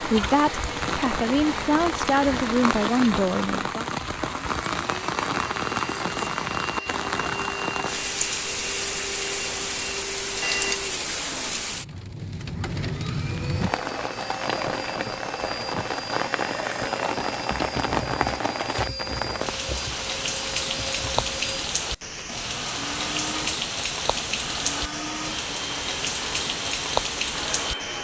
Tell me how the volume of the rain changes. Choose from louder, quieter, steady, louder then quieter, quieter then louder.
steady.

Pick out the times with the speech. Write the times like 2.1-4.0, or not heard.
0.0-3.9.